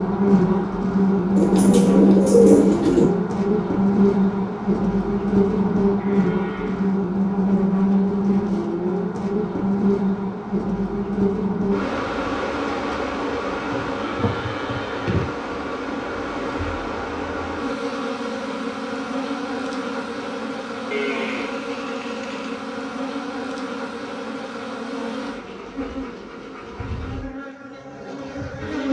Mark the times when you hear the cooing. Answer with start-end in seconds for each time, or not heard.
1.4-3.1.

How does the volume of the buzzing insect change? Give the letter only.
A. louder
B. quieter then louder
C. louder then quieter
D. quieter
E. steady
D.